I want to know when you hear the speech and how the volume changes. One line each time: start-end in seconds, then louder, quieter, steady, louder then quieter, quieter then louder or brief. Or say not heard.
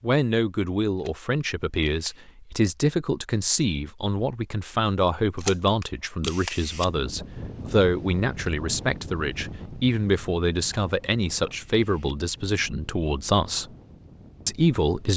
0.0-13.7 steady
14.4-15.1 brief.